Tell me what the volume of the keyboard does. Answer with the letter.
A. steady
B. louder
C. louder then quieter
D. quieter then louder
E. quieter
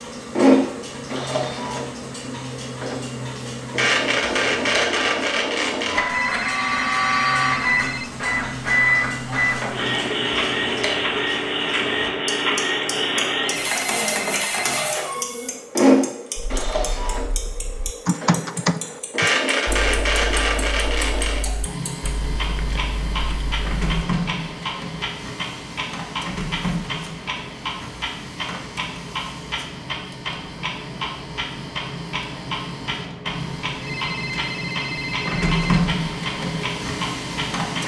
C.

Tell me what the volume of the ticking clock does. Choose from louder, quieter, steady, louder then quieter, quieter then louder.
steady.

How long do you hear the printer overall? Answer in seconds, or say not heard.
38 s.